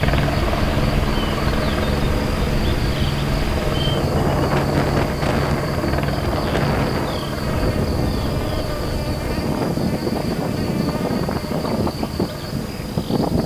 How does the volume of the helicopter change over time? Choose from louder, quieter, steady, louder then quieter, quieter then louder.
quieter.